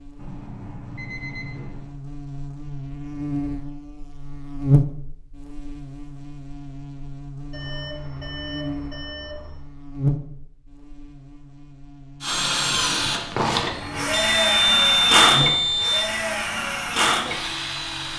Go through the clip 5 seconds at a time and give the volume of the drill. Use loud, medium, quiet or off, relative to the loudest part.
off, off, loud, loud.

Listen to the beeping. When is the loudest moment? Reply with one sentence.
The loudest moment of the beeping is at 15 seconds.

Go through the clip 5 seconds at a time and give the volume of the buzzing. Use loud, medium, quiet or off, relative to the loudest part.
loud, medium, loud, medium.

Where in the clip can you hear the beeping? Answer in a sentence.
You can hear the beeping from 0.1 to 1.9 s, from 7.5 to 9.6 s and from 14.0 to 16.1 s.